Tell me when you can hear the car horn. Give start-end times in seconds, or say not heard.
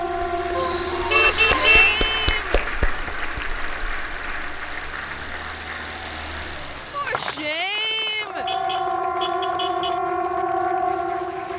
0.6-1.9, 8.4-10.0.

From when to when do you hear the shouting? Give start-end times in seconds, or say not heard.
1.1-2.6, 6.9-8.4.